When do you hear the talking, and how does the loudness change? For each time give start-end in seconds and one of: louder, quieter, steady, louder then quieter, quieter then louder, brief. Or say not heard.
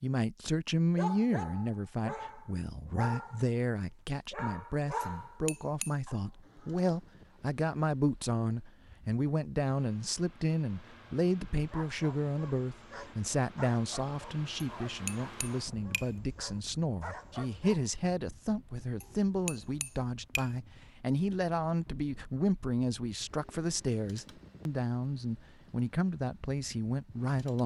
0.0-27.6 steady.